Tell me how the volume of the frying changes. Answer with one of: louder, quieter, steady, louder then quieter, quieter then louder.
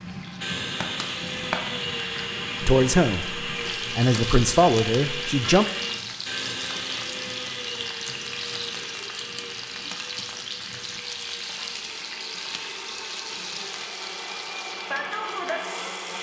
steady.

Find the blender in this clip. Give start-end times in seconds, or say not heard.
0.0-16.1.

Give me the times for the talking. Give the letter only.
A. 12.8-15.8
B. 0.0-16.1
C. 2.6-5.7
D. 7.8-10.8
C.